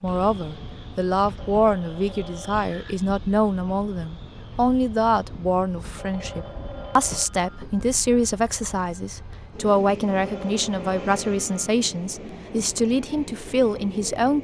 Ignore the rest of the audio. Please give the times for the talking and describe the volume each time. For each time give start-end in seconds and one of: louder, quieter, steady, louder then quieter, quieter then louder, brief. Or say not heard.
0.0-14.3 steady.